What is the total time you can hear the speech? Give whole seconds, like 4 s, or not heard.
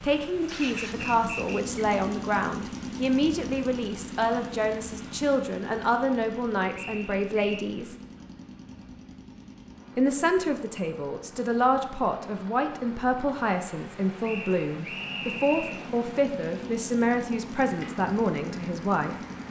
17 s.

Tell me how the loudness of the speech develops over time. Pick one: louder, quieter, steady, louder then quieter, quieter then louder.
steady.